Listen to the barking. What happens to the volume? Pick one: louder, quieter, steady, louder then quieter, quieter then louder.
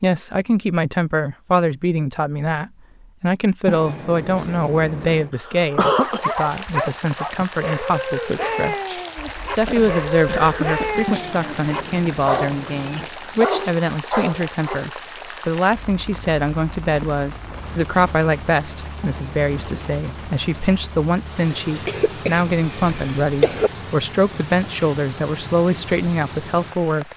steady.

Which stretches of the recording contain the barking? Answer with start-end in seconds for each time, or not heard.
5.7-14.9.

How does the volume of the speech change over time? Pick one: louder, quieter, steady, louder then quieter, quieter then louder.
steady.